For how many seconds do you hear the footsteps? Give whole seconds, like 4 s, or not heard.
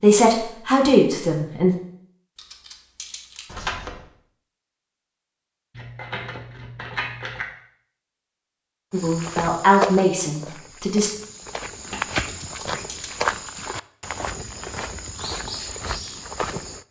8 s.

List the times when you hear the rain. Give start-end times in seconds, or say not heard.
not heard.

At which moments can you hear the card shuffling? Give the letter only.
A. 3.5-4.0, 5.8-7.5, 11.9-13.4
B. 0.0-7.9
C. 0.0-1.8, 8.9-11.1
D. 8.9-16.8
A.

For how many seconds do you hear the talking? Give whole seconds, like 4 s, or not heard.
4 s.